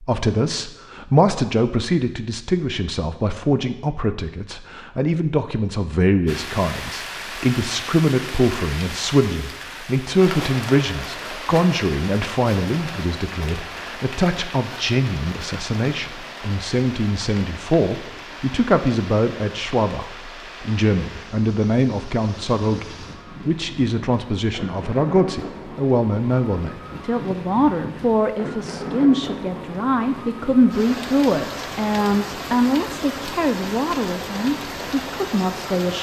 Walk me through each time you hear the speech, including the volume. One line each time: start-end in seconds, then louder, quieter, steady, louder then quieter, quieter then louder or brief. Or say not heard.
0.0-35.9 steady.